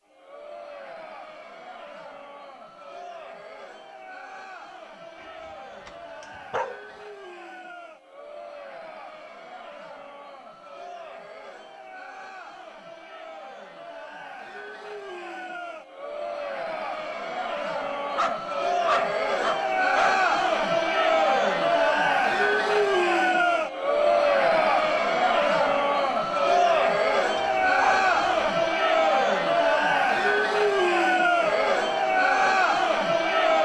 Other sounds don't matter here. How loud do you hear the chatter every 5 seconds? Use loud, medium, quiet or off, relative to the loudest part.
quiet, quiet, quiet, medium, loud, loud, loud.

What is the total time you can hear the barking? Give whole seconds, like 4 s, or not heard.
5 s.